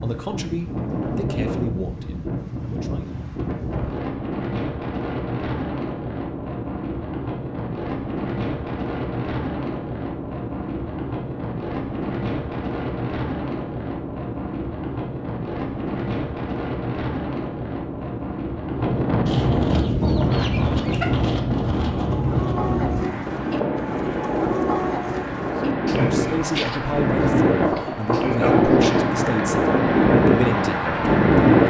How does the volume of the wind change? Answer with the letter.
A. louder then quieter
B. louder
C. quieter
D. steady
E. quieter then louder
B.